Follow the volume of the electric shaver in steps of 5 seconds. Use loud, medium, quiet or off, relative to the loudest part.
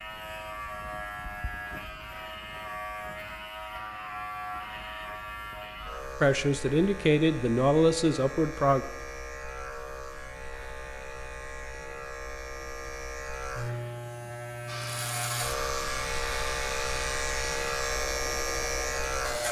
medium, medium, medium, loud.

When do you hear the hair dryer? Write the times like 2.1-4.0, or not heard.
14.7-19.4.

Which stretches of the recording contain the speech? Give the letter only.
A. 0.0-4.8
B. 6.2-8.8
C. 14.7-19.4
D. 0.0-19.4
B.